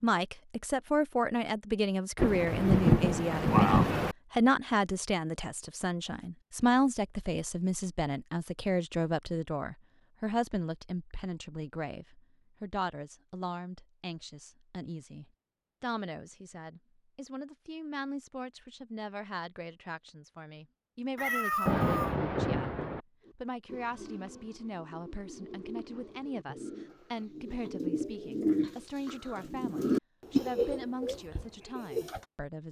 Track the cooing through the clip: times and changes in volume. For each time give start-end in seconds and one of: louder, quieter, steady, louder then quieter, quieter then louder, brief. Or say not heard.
23.2-32.2 louder.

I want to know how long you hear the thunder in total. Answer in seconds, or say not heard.
3 s.